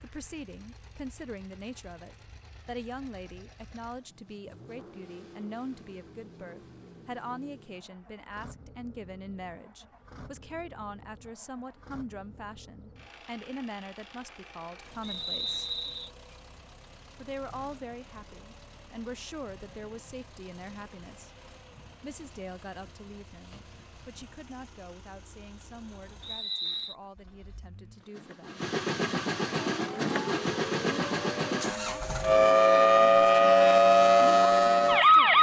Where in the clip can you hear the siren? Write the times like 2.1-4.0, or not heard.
29.6-35.3.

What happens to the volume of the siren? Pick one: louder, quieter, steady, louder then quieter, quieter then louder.
louder.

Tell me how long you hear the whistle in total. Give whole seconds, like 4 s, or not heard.
2 s.